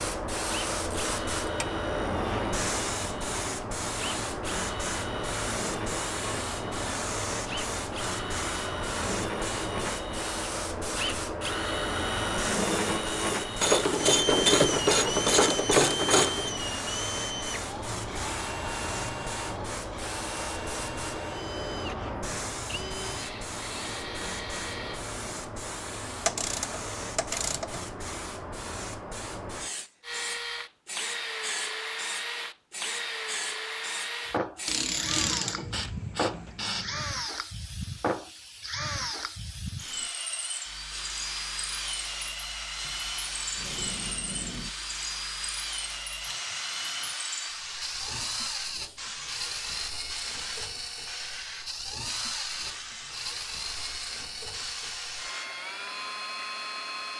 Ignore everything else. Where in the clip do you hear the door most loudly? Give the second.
44 s.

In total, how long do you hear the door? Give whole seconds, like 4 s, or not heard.
2 s.